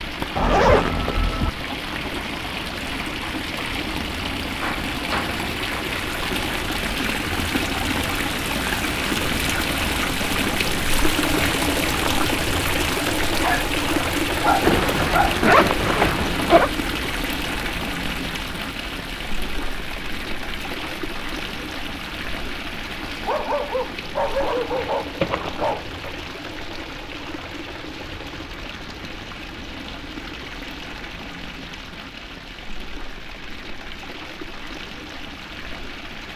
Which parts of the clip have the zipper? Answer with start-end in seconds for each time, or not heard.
0.3-1.5, 14.6-16.7, 25.2-25.8.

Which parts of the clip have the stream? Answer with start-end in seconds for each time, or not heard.
0.0-36.3.